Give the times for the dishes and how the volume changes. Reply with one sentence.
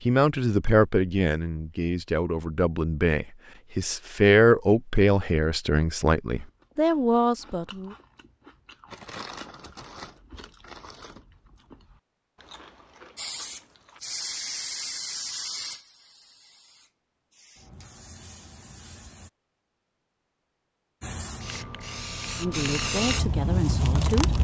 The dishes can't be heard in this clip.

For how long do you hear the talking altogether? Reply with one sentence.
You can hear the talking for 10 seconds altogether.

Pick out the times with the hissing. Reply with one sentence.
You can hear the hissing from 13.2 to 19.3 s and from 21.0 to 24.3 s.